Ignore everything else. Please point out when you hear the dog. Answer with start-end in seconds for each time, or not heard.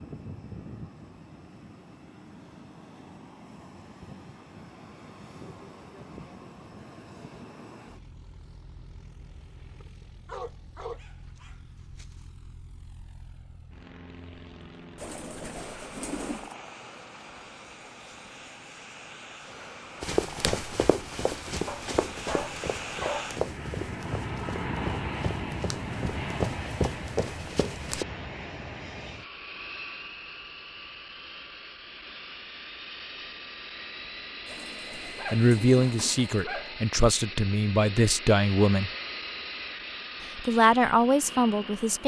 10.2-12.1, 21.6-23.4, 35.0-36.9.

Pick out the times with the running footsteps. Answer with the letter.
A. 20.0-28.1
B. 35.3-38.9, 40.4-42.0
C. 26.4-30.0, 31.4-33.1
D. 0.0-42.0
A.